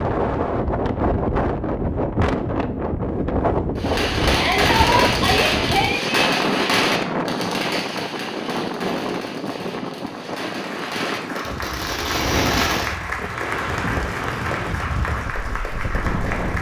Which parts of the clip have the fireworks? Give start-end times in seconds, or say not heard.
3.8-12.9.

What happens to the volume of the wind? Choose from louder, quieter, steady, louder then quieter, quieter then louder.
quieter.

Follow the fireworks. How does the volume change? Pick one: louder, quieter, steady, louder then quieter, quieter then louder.
quieter then louder.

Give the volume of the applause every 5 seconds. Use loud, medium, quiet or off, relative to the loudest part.
off, off, loud, loud.